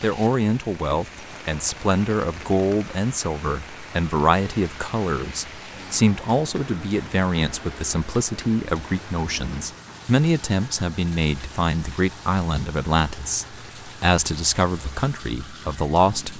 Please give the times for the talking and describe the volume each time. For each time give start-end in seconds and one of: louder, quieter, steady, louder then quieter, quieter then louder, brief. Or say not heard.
0.0-16.3 steady.